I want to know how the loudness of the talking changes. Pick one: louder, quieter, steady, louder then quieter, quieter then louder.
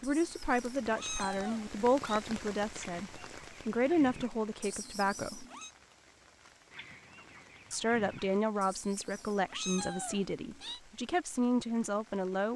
steady.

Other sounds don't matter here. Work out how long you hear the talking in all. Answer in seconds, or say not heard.
10 s.